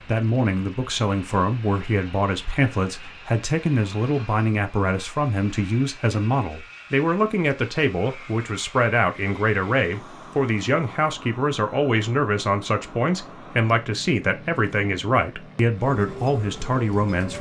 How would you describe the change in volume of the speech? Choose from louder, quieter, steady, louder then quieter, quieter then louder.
steady.